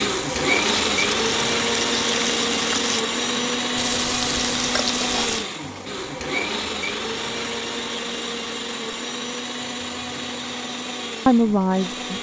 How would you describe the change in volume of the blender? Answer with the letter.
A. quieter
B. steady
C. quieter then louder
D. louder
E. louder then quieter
A.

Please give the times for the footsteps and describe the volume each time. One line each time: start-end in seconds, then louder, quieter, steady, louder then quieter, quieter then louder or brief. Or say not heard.
not heard.